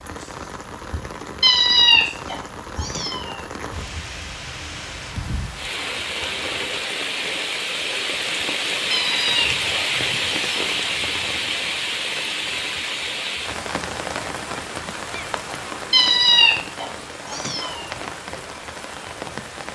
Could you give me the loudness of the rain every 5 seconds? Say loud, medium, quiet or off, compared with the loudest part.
medium, loud, loud, medium.